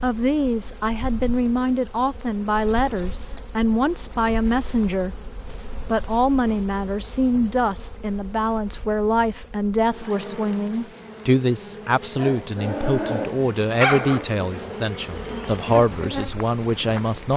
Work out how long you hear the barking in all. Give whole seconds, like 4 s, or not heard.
3 s.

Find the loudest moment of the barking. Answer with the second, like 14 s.
14 s.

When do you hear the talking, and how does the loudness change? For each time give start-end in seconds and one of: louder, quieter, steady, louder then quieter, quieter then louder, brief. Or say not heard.
0.0-17.3 steady.